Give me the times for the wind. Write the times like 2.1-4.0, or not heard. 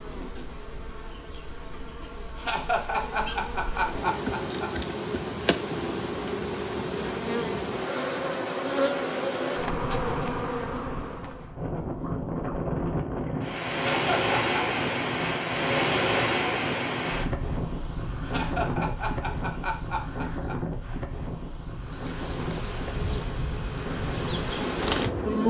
9.6-25.4.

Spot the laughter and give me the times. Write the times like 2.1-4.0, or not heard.
2.4-4.7, 13.9-14.8, 18.2-20.6.